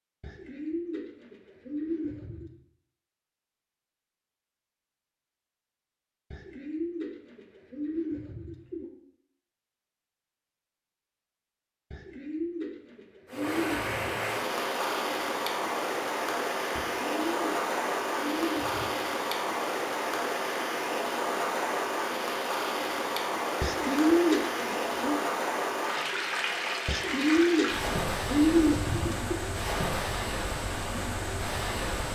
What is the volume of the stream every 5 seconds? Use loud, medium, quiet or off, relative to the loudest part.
off, off, loud, loud, loud, loud, loud.